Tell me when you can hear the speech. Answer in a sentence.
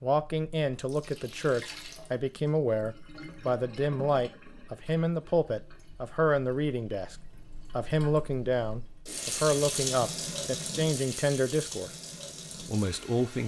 You can hear the speech from 0.0 to 7.2 s, from 7.8 to 11.9 s and from 12.6 to 13.4 s.